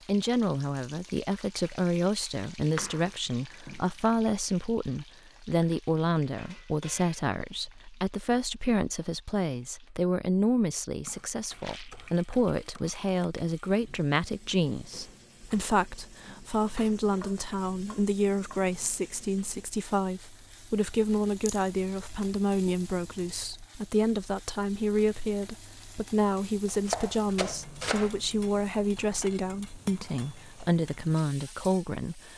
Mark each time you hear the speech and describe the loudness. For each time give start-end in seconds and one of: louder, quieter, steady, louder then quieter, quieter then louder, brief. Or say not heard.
0.1-32.3 steady.